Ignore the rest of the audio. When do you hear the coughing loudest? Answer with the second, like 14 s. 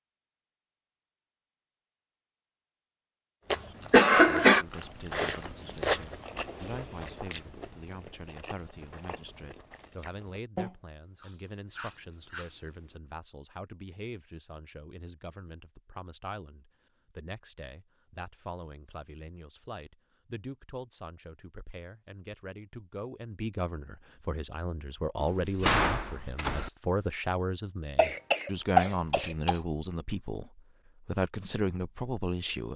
4 s.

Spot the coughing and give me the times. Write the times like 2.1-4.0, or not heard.
3.5-4.7, 27.9-29.6.